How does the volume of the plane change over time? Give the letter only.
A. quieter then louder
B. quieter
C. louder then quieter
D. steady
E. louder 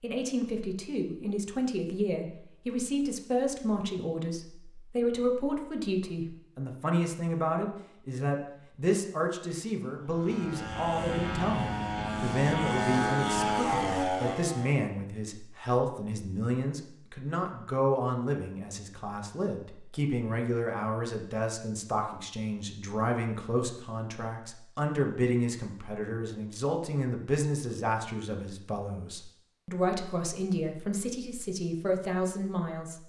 E.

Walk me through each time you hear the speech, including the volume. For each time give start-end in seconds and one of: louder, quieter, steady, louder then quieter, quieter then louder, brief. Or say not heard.
0.0-33.0 steady.